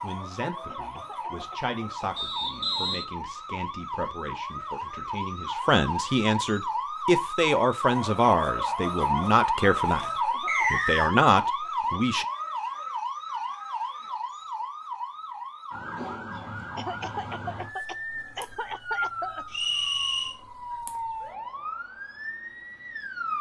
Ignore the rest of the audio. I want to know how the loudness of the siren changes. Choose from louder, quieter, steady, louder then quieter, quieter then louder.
louder then quieter.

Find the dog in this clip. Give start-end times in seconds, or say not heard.
not heard.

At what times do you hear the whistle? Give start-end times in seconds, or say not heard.
2.1-3.0, 10.4-11.2, 19.5-20.4.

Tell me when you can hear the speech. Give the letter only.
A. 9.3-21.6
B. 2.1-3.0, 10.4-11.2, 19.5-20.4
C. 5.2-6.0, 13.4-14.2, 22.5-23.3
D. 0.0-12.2
D.